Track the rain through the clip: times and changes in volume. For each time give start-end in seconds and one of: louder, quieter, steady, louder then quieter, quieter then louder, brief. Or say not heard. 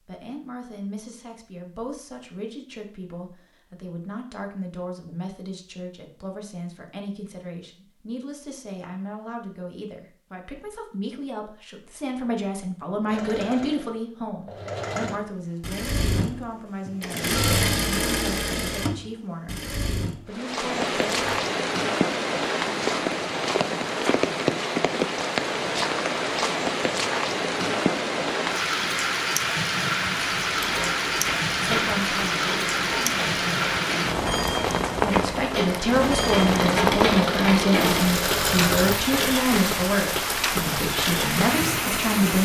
20.3-42.4 steady.